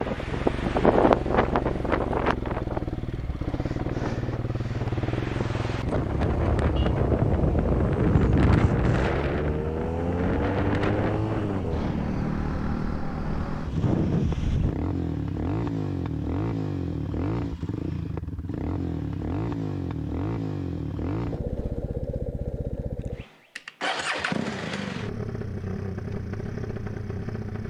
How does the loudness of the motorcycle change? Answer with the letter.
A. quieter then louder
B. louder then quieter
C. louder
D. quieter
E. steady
E.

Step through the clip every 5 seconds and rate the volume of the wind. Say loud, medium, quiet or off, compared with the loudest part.
loud, loud, loud, off, off, off.